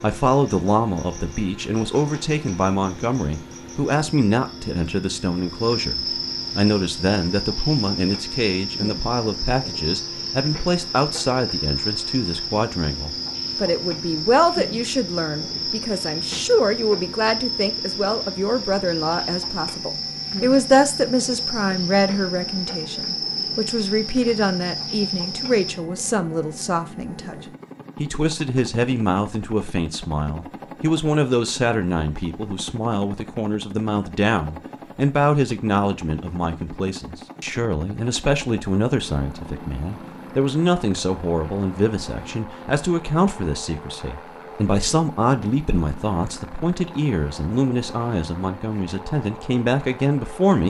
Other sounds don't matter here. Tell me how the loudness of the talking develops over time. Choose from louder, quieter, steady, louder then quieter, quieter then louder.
steady.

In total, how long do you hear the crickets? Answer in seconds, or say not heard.
26 s.